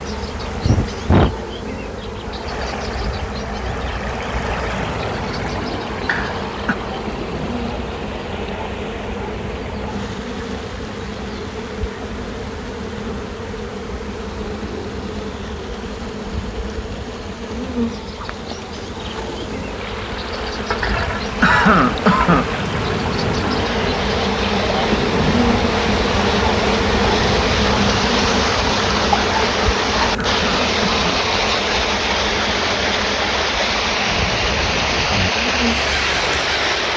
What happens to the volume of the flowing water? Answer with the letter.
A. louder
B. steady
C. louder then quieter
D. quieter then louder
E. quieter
D.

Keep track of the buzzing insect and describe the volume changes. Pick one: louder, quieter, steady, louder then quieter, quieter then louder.
louder then quieter.